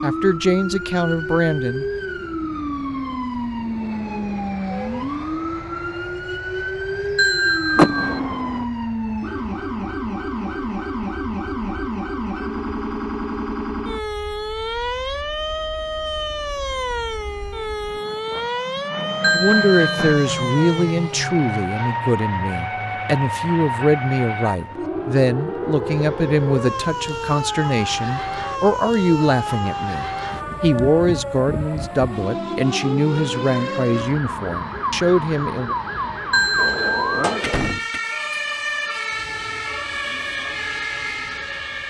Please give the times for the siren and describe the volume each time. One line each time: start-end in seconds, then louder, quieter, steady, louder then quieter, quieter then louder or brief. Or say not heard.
0.0-41.8 steady.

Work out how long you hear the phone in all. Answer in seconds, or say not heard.
3 s.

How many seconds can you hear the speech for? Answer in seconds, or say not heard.
18 s.